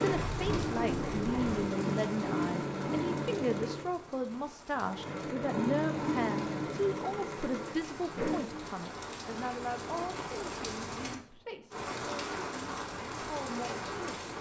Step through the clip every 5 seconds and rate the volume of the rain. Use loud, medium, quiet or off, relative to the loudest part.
medium, medium, loud.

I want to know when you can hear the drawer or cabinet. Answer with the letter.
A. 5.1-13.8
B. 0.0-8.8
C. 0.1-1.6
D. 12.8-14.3
C.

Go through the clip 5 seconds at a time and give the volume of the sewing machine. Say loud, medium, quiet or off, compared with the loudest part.
loud, loud, off.